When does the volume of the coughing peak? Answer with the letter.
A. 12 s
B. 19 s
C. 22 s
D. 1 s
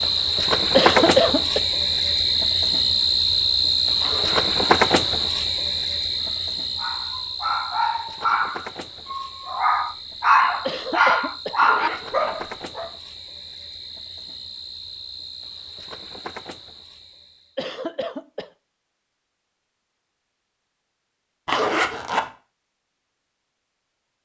D.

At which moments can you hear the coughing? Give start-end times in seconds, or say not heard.
0.8-1.6, 10.7-11.6, 17.6-18.5.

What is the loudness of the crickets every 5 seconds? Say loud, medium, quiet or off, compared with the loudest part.
loud, medium, quiet, quiet, off.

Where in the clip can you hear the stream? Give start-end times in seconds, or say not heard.
not heard.